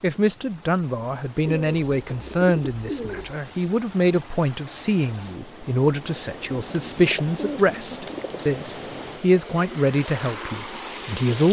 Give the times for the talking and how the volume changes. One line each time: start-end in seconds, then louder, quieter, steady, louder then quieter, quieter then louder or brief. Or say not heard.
0.0-11.4 steady.